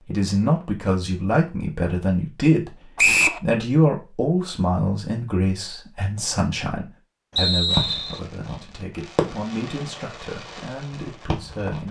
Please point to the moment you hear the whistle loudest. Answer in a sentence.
The loudest moment of the whistle is at 3 seconds.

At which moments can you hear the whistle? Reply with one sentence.
The whistle can be heard from 3.0 to 3.4 s and from 7.3 to 8.2 s.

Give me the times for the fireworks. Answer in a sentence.
You can hear the fireworks from 7.7 to 11.8 s.